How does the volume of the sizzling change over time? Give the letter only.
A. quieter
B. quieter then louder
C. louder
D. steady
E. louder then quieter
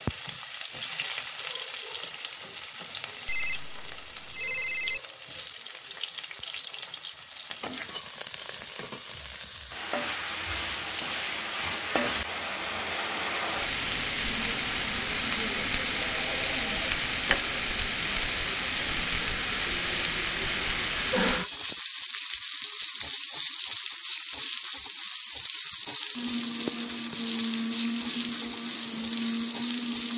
C.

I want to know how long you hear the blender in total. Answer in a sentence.
You can hear the blender for 4 seconds altogether.